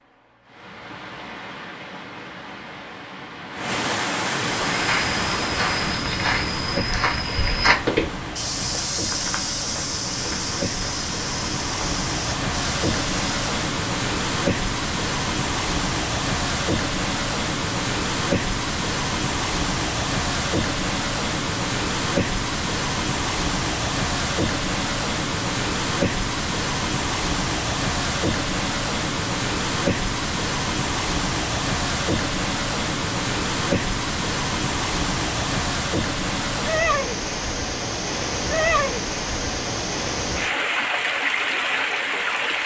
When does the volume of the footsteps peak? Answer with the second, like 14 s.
8 s.